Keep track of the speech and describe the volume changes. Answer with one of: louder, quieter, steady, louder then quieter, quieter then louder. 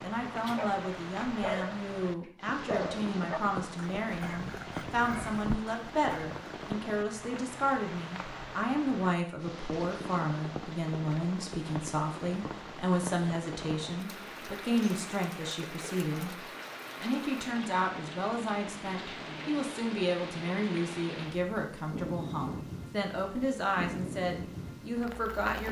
steady.